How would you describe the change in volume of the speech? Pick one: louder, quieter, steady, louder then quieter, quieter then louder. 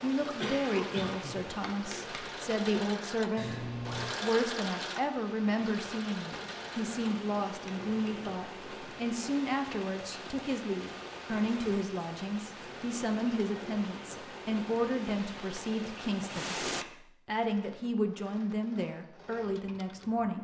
steady.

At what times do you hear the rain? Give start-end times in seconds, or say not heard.
0.0-16.9.